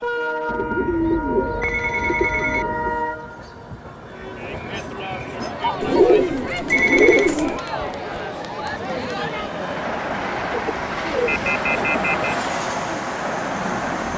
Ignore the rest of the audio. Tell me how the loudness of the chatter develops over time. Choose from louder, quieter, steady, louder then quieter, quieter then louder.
steady.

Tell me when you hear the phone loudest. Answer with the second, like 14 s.
7 s.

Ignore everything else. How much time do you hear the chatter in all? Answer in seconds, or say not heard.
10 s.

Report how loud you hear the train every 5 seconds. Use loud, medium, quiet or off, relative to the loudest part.
loud, medium, loud.